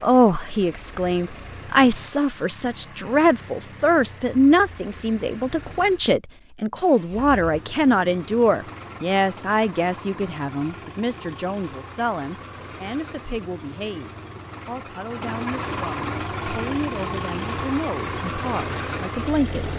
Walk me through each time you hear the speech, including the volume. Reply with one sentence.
The speech can be heard from 0.0 to 19.7 s, getting quieter.